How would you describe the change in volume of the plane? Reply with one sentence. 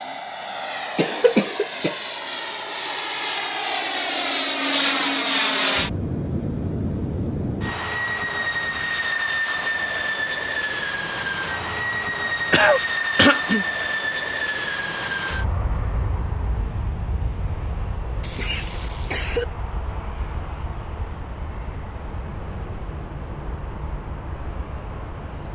The loudness of the plane goes down.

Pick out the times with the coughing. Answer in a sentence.
You can hear the coughing from 0.9 to 2.0 s, from 12.5 to 13.7 s and from 18.2 to 19.4 s.